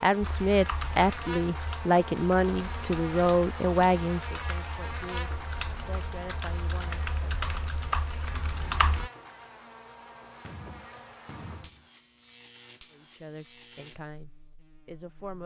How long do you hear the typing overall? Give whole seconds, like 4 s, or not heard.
9 s.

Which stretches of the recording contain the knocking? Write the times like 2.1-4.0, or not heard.
10.2-11.8.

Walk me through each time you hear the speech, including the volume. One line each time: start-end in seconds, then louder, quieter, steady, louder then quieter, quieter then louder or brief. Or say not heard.
0.0-7.5 quieter
12.9-15.4 brief.